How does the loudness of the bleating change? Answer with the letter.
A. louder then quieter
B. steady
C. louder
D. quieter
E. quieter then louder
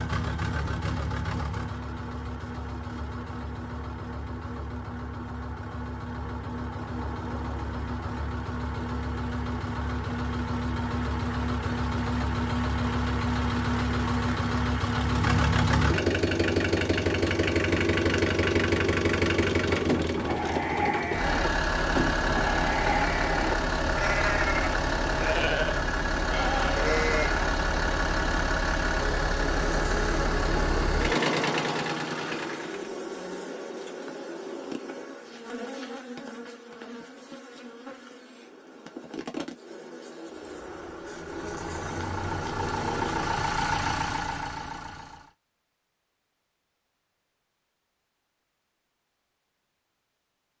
B.